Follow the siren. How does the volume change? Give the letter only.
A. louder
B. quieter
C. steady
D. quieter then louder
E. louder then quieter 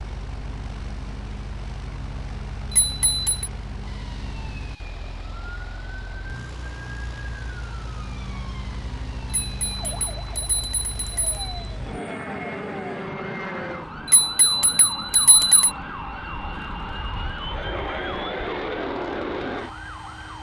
A.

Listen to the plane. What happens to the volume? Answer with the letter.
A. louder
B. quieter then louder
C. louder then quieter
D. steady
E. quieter
A.